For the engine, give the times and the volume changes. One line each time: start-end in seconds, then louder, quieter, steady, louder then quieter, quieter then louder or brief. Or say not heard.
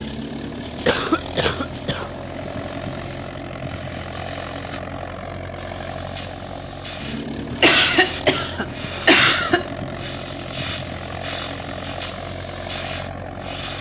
0.0-13.7 steady.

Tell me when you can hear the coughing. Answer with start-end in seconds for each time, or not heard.
0.8-2.1, 7.3-9.7.